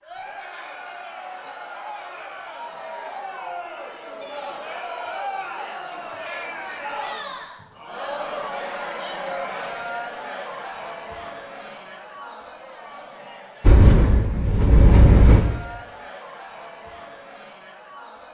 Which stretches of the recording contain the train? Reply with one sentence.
You can hear the train from 13.6 to 15.4 s.